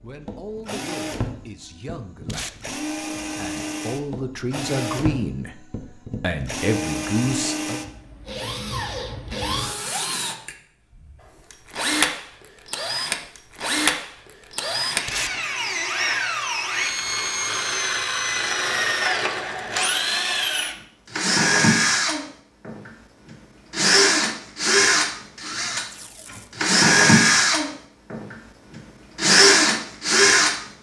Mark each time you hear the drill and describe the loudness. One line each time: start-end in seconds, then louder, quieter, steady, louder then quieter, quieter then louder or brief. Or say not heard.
0.0-30.6 louder.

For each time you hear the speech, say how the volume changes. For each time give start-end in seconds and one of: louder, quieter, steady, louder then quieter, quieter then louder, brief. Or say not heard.
0.0-7.8 louder.